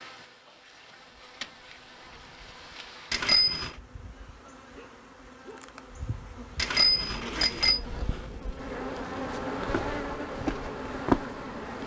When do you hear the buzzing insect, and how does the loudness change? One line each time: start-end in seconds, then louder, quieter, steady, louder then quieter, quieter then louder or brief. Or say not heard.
0.0-11.8 louder.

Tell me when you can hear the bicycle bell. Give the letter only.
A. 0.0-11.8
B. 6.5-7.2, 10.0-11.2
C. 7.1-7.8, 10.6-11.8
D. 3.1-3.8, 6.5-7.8
D.